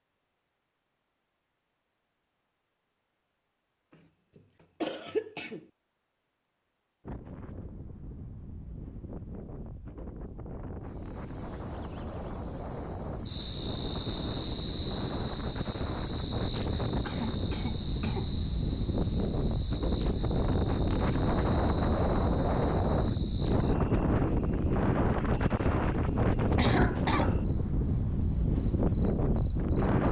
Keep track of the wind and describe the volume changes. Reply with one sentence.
The volume of the wind goes up.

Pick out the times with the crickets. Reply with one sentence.
You can hear the crickets from 10.8 to 30.0 s.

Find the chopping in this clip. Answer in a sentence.
The chopping can't be heard in this clip.